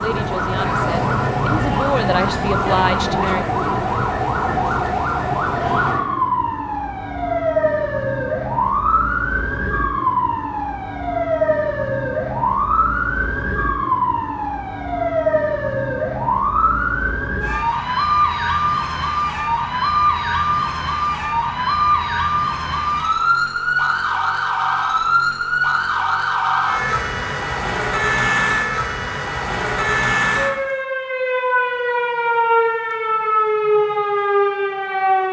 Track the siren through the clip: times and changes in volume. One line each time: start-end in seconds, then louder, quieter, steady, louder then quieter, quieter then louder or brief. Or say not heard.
0.0-35.2 steady.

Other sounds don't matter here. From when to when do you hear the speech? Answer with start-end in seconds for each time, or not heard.
0.0-3.5.